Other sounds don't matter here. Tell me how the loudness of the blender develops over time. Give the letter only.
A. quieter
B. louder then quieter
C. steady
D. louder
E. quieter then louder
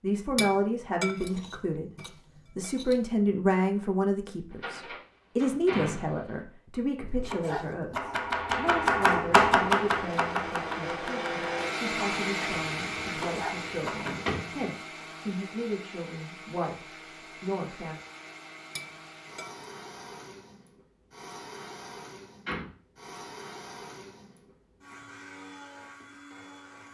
A.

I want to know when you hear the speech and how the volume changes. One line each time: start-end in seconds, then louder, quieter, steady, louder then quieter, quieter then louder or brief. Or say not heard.
0.0-1.9 brief
2.5-18.0 quieter.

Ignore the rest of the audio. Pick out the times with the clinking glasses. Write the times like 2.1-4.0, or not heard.
0.3-3.0, 18.8-19.6.